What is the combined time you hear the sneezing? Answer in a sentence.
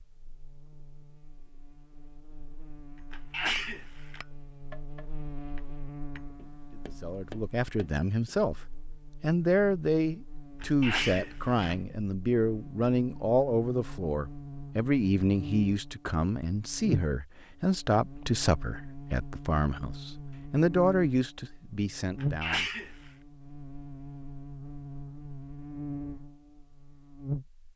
You can hear the sneezing for 3 seconds altogether.